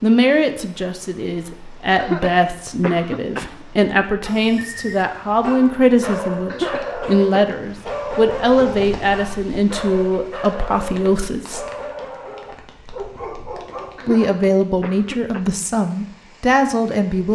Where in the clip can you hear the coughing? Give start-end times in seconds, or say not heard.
1.9-3.5, 6.5-7.5, 13.9-15.5.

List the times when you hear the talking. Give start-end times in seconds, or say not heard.
0.0-11.7, 14.1-17.3.